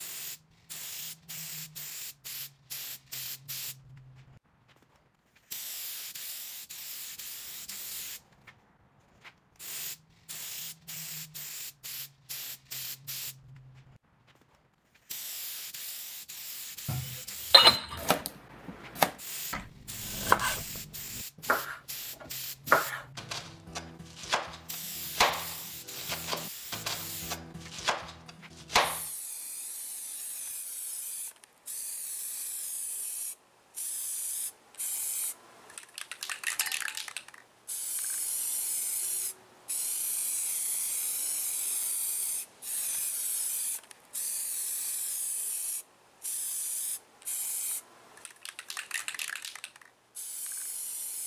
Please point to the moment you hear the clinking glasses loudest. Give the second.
18 s.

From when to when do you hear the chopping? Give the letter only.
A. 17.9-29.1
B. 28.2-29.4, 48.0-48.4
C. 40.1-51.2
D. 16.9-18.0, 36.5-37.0
A.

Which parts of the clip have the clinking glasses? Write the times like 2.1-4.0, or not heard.
16.9-18.0, 36.5-37.0.